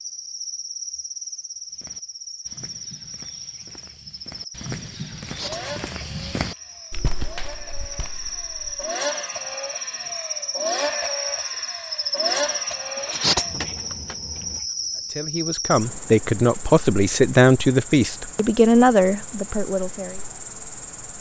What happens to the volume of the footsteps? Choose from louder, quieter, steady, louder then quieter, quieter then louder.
louder then quieter.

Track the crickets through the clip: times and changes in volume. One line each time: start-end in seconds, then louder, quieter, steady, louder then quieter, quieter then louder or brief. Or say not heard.
0.0-21.1 louder then quieter.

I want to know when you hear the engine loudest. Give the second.
11 s.